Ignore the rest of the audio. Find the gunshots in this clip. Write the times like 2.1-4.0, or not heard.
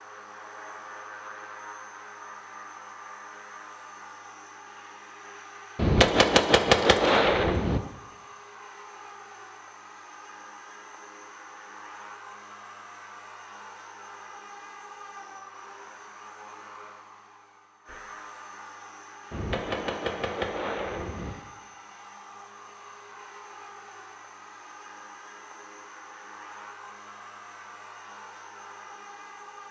5.8-7.8, 19.3-21.3.